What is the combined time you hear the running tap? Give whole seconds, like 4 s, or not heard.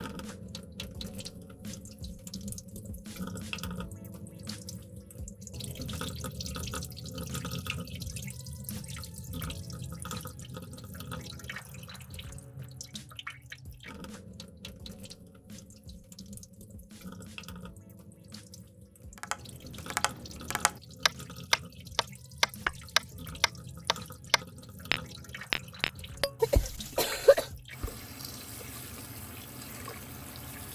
31 s.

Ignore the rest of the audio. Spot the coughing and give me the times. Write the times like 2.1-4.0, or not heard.
26.4-27.4.